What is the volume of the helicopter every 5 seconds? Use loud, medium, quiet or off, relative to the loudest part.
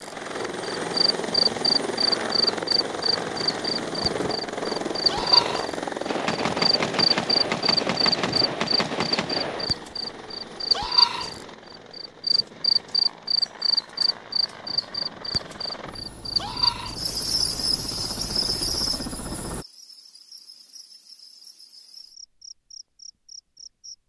loud, loud, quiet, medium, off.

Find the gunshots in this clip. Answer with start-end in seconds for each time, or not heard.
6.0-9.7.